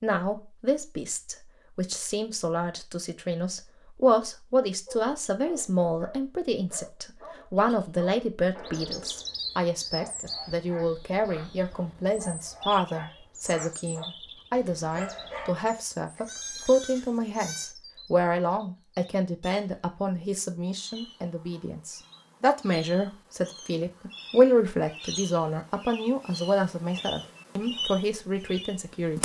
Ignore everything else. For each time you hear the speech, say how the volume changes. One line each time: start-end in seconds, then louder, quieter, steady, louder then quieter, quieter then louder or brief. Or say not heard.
0.0-29.1 steady.